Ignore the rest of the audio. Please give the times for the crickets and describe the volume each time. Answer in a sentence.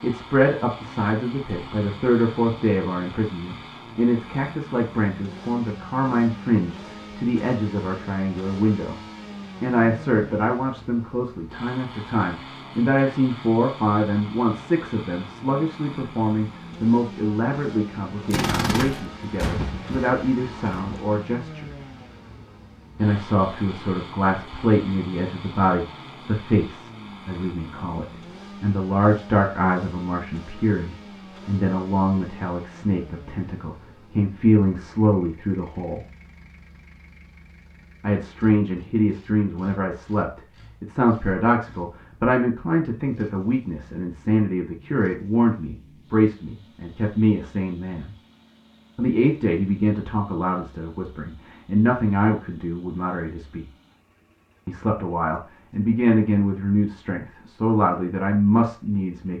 You can't hear the crickets here.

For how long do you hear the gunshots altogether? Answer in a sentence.
The gunshots can be heard for 3 seconds in total.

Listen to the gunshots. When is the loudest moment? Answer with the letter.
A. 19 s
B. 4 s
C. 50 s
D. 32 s
A.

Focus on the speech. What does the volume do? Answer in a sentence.
The loudness of the speech stays about the same.